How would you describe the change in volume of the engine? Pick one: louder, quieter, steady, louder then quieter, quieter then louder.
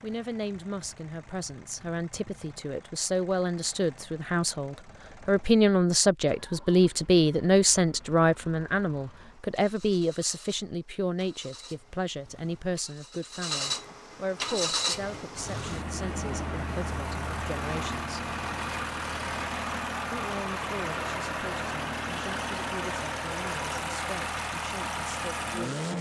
louder.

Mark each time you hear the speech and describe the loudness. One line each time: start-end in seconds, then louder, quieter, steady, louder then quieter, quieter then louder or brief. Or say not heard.
0.0-18.4 louder then quieter
20.1-25.9 steady.